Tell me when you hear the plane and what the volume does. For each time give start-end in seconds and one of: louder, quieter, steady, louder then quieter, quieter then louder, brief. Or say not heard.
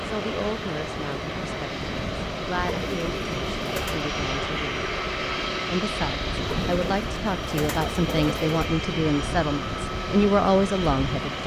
0.0-11.4 steady.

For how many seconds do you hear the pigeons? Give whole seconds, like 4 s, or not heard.
4 s.